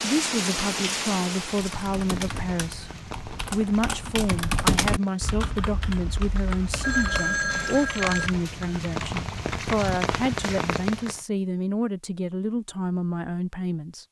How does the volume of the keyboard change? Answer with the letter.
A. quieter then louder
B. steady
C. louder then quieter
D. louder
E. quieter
C.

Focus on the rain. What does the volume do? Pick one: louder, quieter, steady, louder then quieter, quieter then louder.
quieter then louder.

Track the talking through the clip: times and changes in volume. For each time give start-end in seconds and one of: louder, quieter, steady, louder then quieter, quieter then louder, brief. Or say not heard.
0.0-14.0 steady.